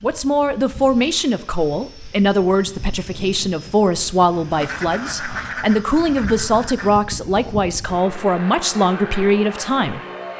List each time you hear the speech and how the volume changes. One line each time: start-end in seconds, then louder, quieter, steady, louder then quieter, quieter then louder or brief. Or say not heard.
0.0-10.0 steady.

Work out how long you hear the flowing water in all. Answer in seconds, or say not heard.
not heard.